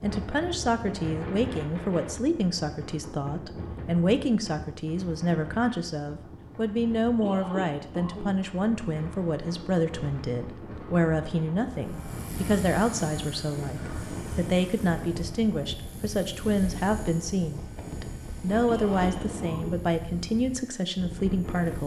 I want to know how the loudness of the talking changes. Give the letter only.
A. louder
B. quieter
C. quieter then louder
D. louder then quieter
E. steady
E.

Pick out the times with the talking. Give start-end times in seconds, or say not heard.
0.0-21.8.